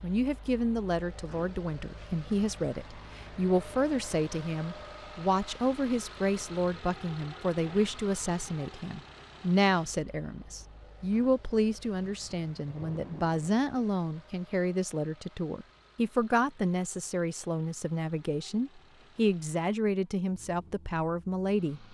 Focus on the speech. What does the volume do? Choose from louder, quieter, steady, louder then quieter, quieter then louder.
steady.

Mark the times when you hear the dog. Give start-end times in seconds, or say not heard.
not heard.